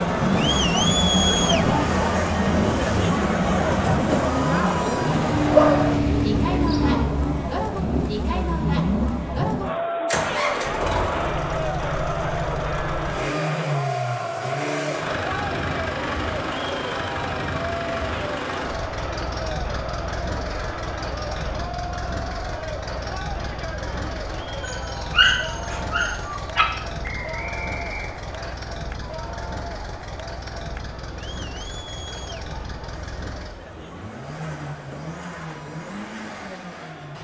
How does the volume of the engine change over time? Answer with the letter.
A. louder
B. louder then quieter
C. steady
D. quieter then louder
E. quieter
E.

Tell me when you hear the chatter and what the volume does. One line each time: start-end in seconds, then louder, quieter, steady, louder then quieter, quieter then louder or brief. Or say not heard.
0.0-37.1 quieter.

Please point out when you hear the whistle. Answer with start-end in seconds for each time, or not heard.
27.0-28.6.